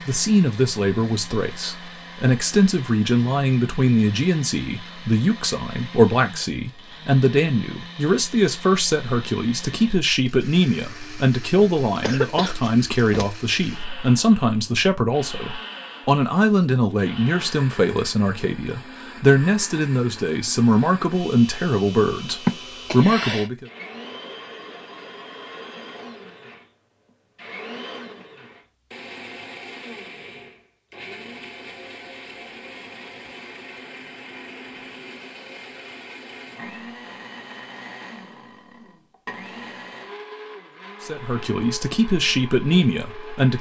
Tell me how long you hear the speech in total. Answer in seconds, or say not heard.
26 s.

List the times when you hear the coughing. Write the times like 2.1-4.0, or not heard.
11.6-13.2, 22.4-23.5.